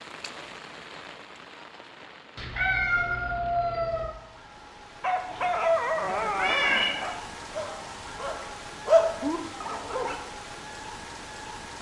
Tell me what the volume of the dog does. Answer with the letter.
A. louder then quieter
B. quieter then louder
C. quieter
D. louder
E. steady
B.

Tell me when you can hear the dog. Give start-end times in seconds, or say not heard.
5.0-10.2.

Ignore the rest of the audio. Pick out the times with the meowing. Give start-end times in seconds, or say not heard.
2.4-4.2, 6.3-7.0.